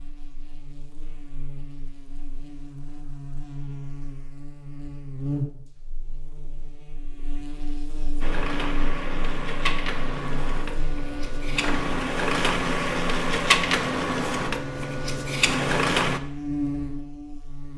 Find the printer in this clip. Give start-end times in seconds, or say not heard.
8.2-16.2.